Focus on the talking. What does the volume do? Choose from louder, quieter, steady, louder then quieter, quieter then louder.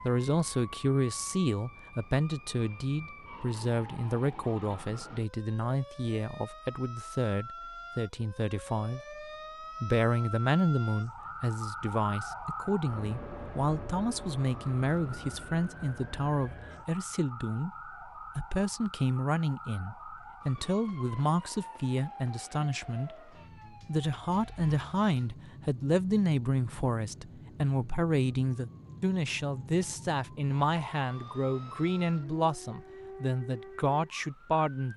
steady.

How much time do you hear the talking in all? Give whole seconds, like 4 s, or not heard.
35 s.